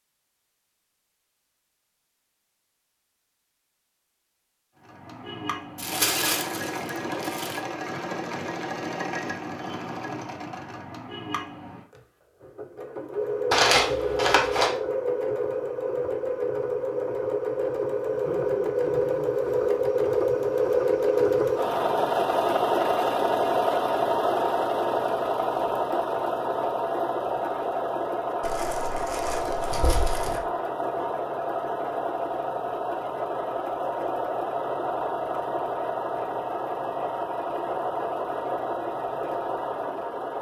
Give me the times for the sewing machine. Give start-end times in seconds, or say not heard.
4.8-40.3.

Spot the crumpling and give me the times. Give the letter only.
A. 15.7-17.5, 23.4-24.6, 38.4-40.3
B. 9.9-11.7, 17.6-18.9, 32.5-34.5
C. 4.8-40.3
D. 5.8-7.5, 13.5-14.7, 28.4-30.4
D.